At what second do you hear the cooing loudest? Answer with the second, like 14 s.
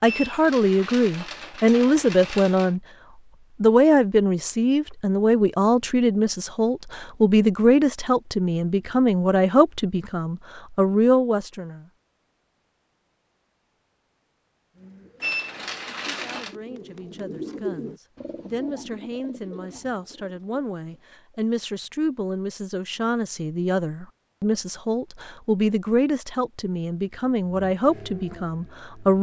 18 s.